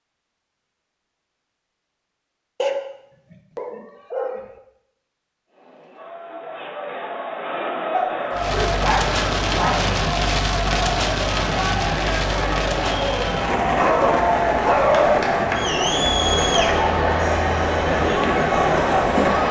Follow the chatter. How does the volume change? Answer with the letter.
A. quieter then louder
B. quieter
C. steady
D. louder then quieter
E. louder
E.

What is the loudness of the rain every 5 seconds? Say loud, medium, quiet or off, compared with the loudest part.
off, loud, loud, loud.